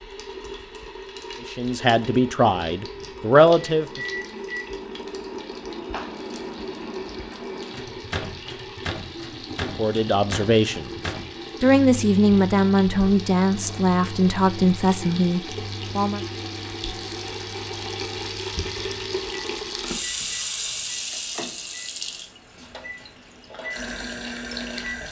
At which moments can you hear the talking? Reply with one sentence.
You can hear the talking from 1.4 to 4.0 s, from 9.6 to 10.9 s and from 11.6 to 16.2 s.